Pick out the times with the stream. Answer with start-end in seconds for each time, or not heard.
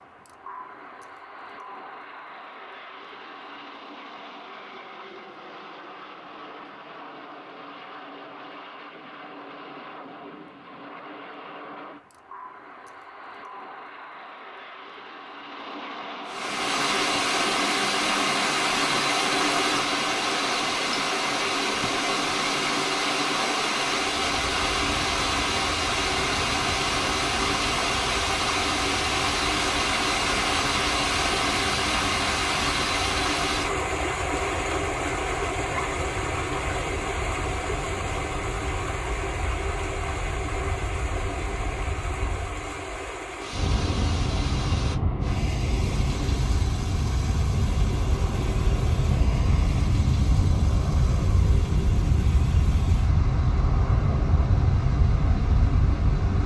16.2-56.4.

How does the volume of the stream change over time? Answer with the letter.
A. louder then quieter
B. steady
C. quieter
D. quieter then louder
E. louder
C.